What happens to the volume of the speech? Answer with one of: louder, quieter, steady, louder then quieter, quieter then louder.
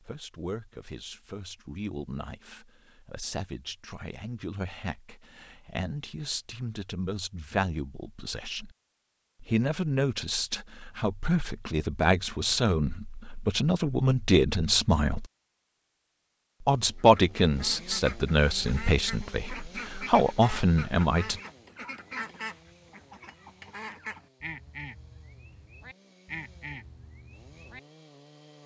louder.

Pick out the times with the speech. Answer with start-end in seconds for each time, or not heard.
0.0-8.7, 9.4-15.2, 16.6-21.4.